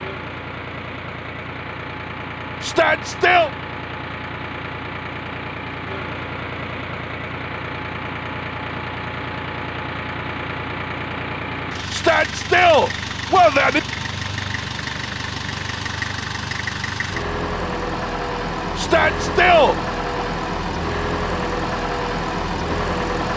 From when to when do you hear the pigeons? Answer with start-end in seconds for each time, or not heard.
not heard.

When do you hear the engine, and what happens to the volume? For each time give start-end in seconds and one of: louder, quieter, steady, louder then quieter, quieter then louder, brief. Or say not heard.
0.0-23.3 louder.